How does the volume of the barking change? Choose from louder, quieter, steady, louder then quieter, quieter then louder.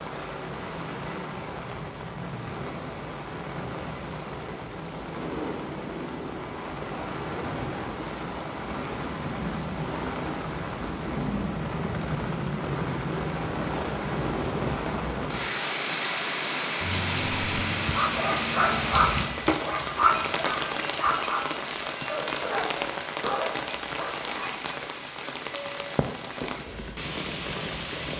quieter.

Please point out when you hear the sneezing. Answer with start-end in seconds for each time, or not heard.
not heard.